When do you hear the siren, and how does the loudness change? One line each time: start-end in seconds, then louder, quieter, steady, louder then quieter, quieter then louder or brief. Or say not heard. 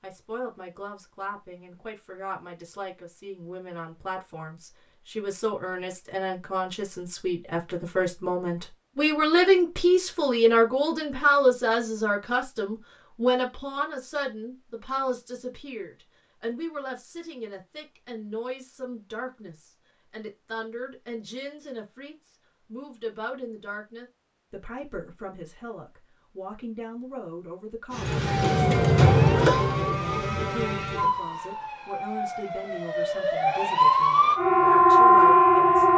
27.9-35.9 quieter then louder.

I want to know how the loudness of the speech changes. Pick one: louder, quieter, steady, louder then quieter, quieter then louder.
louder then quieter.